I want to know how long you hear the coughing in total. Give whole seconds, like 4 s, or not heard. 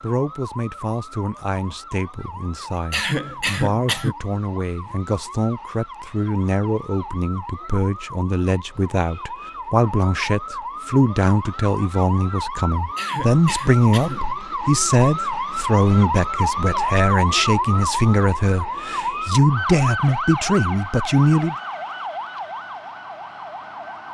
3 s.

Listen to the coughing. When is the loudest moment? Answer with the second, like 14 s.
3 s.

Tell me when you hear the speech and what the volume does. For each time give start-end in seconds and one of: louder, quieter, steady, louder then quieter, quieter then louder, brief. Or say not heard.
0.0-21.6 louder.